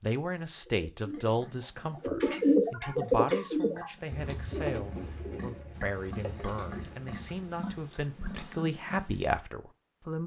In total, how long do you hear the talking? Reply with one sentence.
You can hear the talking for 10 seconds altogether.